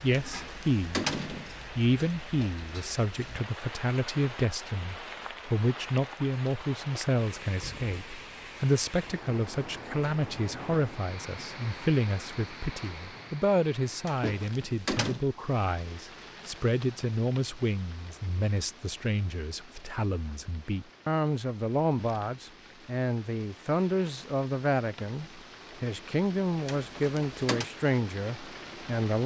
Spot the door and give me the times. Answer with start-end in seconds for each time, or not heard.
0.1-1.6, 14.1-15.2, 26.6-27.7.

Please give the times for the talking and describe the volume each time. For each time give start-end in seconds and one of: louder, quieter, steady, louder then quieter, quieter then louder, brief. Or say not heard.
0.0-1.1 brief
1.8-29.2 steady.